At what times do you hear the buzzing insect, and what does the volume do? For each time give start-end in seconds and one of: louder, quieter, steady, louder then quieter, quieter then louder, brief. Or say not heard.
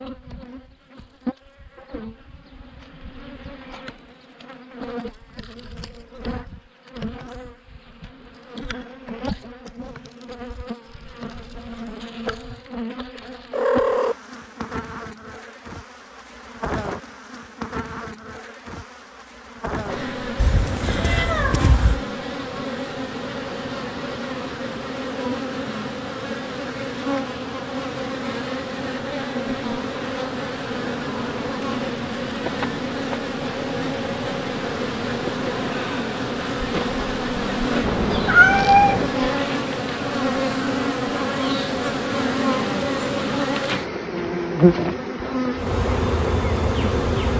0.0-47.3 louder.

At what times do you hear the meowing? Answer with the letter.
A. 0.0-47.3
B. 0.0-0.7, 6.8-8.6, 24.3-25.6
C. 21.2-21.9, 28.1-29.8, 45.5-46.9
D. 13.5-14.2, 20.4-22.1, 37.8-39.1
D.